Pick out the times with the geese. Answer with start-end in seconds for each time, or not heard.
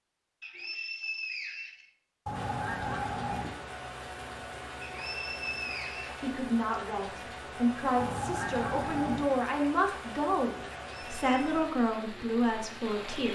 2.2-3.5, 8.0-9.2.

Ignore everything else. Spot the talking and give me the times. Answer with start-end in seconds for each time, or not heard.
6.2-13.3.